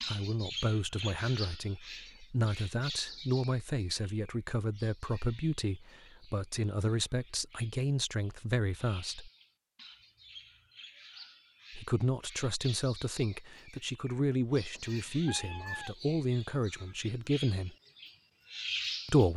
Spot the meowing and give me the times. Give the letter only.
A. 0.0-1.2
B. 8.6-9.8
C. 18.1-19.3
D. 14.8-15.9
D.